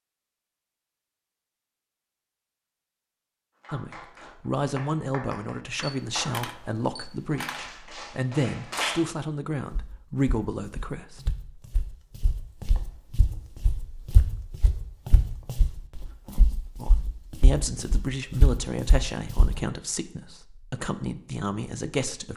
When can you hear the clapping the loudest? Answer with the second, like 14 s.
9 s.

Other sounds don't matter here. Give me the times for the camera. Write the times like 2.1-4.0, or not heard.
5.8-7.7.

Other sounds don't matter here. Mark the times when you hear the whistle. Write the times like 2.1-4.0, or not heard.
not heard.